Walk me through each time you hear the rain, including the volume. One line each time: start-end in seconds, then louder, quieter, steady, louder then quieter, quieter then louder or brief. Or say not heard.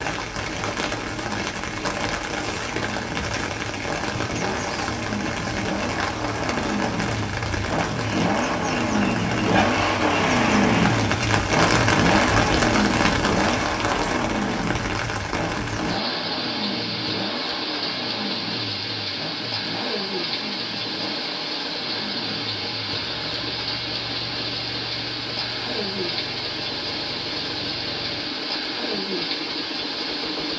0.0-30.5 steady.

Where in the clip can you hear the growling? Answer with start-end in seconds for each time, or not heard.
not heard.